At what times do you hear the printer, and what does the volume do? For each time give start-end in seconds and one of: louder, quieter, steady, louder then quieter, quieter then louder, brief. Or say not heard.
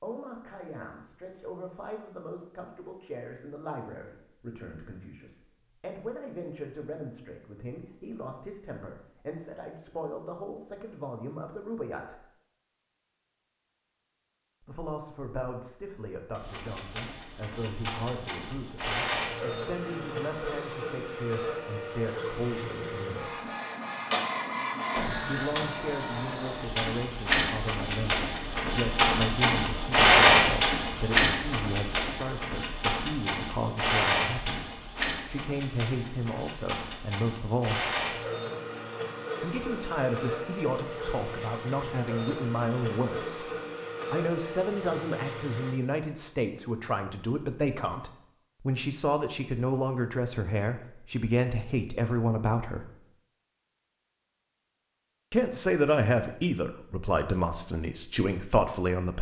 16.4-45.8 louder then quieter.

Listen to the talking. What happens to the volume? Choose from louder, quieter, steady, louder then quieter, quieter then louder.
louder.